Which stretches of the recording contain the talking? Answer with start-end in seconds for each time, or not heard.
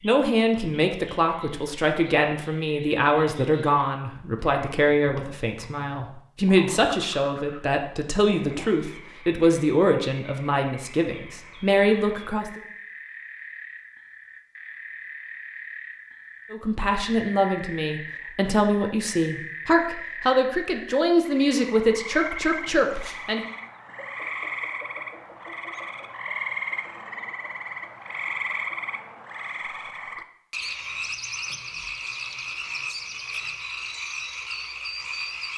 0.0-12.6, 16.5-23.4.